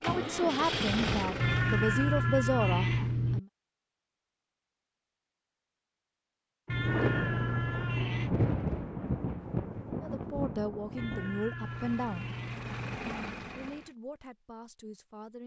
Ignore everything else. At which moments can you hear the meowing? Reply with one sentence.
You can hear the meowing from 1.4 to 3.4 s, from 6.7 to 8.3 s and from 10.9 to 13.0 s.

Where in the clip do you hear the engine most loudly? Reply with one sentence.
The volume of the engine peaks at 1 second.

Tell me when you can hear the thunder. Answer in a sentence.
The thunder can be heard from 6.7 to 11.4 s.